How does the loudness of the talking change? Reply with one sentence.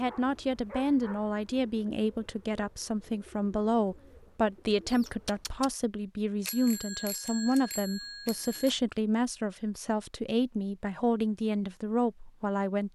The loudness of the talking stays about the same.